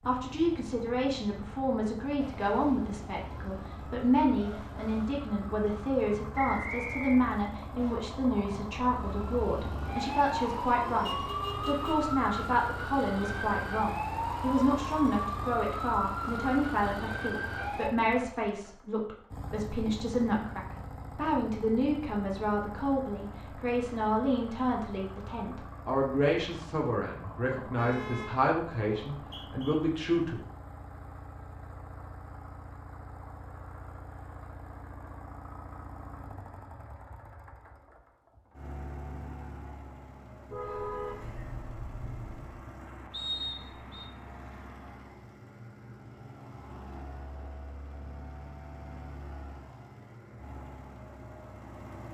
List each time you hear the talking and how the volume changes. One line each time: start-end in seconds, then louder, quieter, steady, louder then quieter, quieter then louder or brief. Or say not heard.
0.1-30.4 steady.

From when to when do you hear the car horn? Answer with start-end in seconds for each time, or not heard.
11.0-12.1, 27.6-28.4, 40.5-42.5.